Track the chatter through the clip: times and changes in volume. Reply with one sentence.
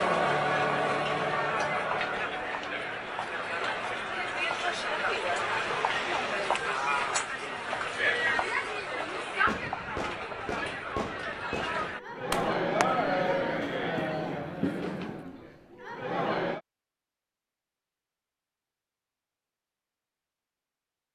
The chatter can be heard from 0.0 to 16.6 s, at a steady volume.